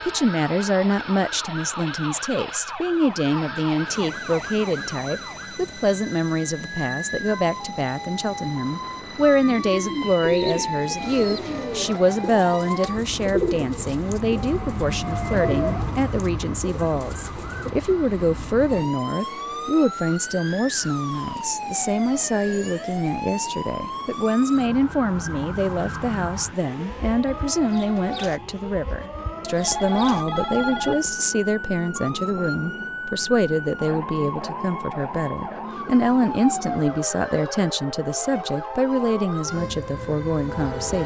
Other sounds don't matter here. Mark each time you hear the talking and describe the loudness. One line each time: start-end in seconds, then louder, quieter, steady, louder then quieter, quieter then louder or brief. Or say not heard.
0.1-41.0 steady.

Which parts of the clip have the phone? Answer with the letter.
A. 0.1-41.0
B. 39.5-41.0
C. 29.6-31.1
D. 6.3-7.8
C.